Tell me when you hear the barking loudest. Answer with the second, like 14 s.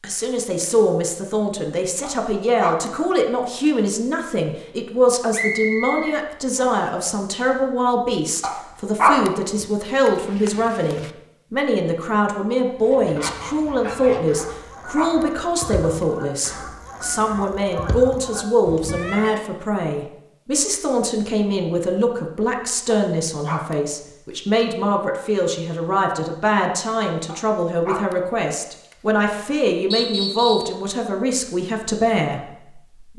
9 s.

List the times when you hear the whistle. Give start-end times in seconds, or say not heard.
5.3-6.8, 29.9-30.8.